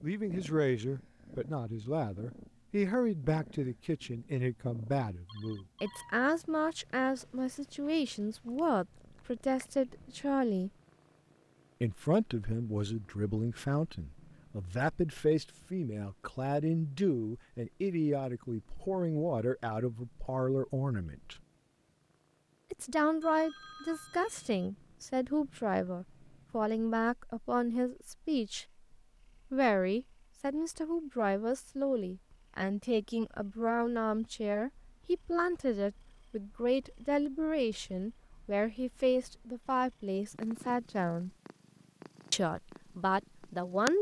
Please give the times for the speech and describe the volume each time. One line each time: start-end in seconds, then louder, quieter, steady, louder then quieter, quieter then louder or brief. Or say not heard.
0.0-10.7 steady
11.8-21.4 steady
22.7-28.6 steady
29.5-41.3 steady
42.3-43.9 brief.